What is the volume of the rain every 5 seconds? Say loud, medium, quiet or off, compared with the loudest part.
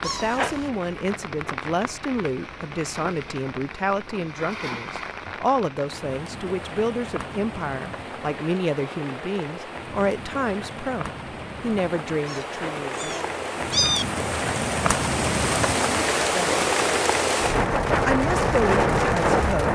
quiet, quiet, medium, loud.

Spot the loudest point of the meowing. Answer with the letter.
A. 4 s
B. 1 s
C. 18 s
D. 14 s
D.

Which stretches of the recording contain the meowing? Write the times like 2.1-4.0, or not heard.
0.0-0.7, 12.2-14.1.